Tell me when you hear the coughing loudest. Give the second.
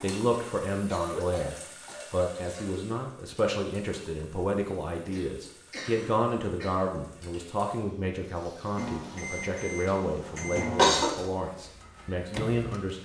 11 s.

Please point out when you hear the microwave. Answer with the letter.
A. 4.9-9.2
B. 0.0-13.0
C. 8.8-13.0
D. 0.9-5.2
C.